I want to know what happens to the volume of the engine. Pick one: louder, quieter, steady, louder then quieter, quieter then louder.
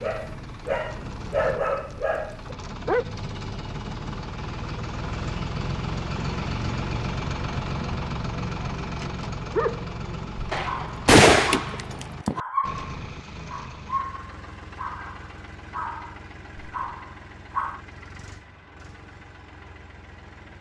louder then quieter.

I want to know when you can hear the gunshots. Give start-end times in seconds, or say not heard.
10.5-12.4.